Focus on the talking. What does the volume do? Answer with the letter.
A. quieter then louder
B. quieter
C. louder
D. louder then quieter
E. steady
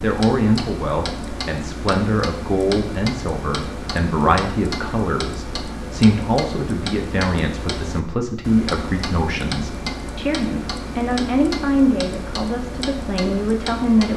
E.